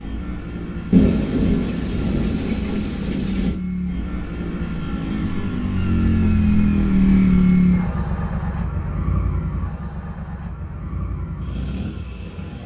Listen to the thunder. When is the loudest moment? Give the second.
1 s.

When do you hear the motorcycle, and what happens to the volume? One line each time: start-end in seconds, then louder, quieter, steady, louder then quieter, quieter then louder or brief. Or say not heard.
0.0-12.6 louder then quieter.